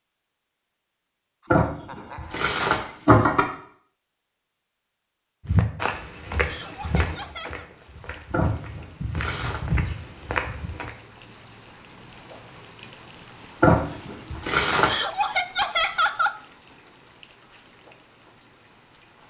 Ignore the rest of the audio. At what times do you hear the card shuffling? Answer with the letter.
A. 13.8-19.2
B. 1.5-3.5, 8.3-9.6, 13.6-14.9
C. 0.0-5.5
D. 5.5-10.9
B.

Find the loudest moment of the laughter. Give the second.
16 s.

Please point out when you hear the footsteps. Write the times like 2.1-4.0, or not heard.
5.5-10.9.